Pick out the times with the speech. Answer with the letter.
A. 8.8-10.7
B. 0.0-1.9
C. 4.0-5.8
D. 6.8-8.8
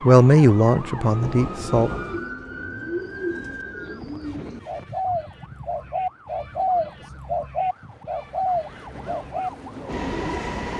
B.